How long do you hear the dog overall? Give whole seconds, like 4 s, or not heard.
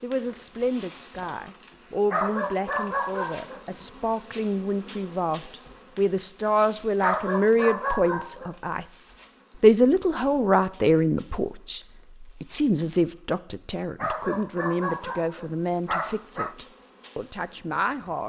6 s.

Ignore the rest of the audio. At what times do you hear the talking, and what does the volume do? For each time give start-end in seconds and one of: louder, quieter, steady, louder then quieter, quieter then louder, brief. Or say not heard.
0.0-18.2 louder then quieter.